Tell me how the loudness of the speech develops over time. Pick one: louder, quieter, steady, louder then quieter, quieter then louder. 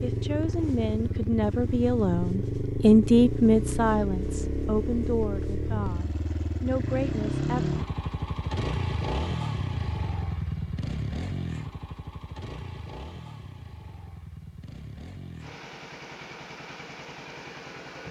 louder then quieter.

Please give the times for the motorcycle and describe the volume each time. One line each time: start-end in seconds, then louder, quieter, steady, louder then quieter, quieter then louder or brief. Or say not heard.
0.0-18.0 quieter.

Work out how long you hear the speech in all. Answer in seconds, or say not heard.
8 s.